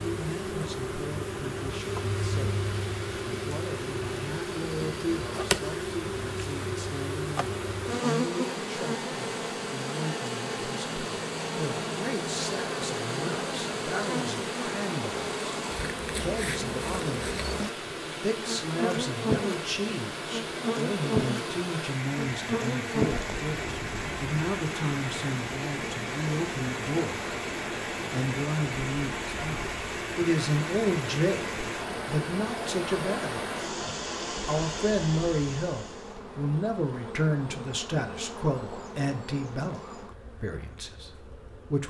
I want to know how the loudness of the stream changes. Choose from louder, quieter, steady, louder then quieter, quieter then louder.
louder.